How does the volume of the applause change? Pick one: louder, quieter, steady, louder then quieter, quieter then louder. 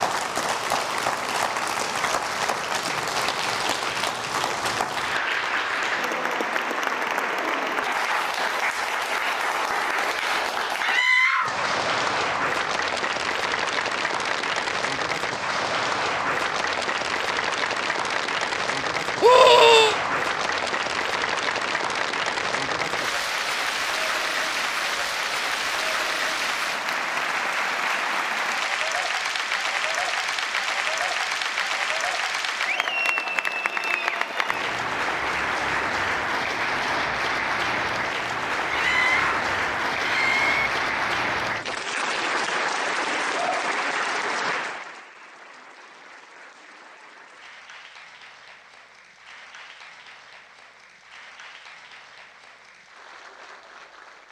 quieter.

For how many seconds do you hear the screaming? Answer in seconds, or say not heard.
4 s.